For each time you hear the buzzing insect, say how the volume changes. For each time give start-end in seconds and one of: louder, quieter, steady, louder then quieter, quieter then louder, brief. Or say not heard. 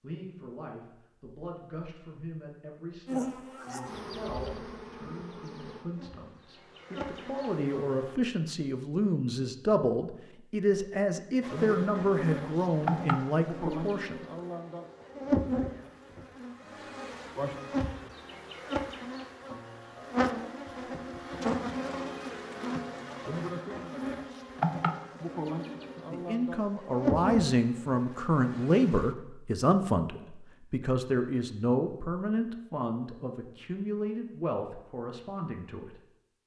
3.0-8.2 quieter then louder
11.4-29.1 steady.